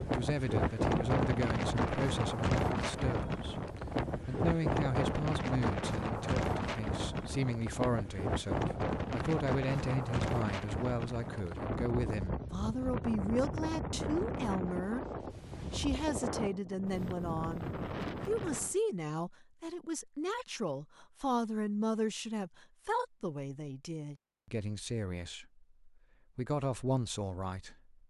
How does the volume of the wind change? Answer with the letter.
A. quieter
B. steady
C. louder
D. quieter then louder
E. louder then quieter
A.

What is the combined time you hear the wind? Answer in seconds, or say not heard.
19 s.